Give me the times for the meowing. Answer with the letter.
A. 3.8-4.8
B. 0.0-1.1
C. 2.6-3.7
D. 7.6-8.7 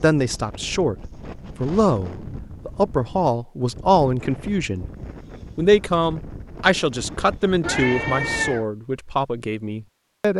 D.